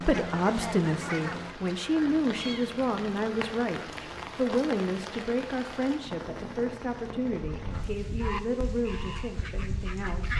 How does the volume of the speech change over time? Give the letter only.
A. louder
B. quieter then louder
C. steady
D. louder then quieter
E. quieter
E.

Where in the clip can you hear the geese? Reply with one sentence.
You can hear the geese from 0.0 to 1.6 s and from 7.5 to 10.3 s.